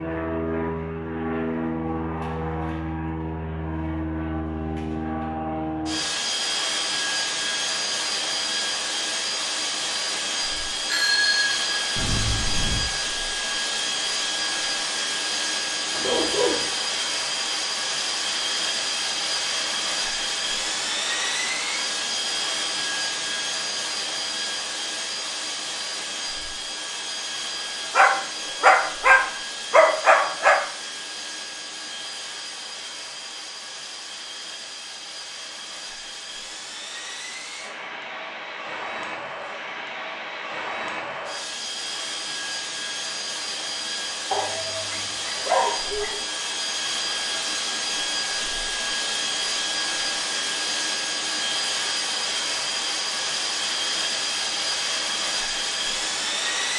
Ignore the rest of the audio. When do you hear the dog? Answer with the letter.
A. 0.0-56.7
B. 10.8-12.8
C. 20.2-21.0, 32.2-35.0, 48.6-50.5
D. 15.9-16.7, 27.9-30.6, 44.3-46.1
D.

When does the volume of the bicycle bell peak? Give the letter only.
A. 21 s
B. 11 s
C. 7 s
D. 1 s
B.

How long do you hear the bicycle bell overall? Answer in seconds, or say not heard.
2 s.